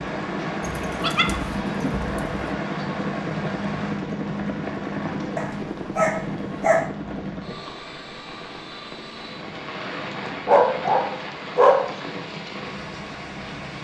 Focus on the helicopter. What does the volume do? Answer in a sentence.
The loudness of the helicopter goes down.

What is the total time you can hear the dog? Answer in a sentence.
You can hear the dog for 5 seconds altogether.